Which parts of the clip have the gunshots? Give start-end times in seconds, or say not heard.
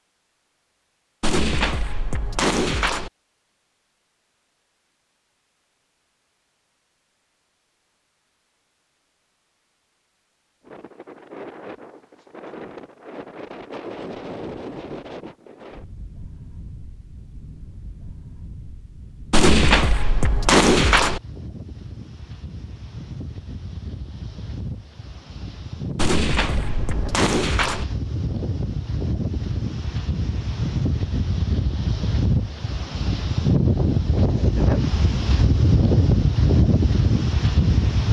1.2-3.1, 19.3-21.2, 25.9-27.9.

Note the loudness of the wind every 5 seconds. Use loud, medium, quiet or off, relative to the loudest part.
off, off, quiet, quiet, quiet, medium, loud, loud.